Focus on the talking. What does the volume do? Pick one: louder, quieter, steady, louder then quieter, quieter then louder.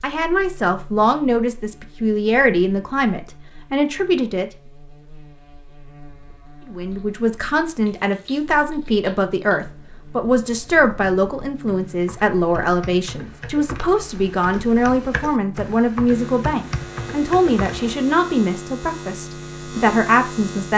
steady.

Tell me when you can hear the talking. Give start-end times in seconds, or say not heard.
0.0-4.5, 6.7-20.7.